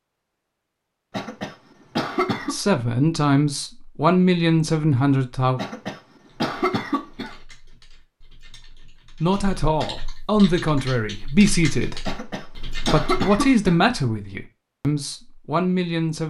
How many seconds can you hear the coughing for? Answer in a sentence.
You can hear the coughing for 5 seconds altogether.